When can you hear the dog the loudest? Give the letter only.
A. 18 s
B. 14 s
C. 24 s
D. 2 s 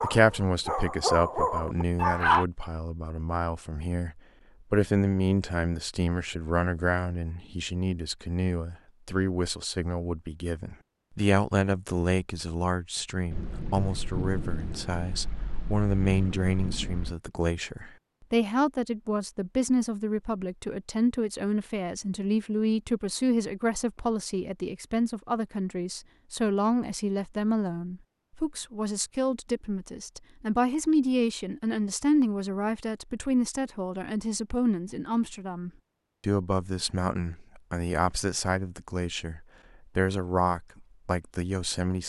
D.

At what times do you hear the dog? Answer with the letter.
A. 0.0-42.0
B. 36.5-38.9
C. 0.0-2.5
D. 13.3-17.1
C.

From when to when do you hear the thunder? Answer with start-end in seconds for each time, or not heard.
13.3-17.1.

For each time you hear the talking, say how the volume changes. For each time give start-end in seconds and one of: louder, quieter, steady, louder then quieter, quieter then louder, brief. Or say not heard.
0.0-42.0 steady.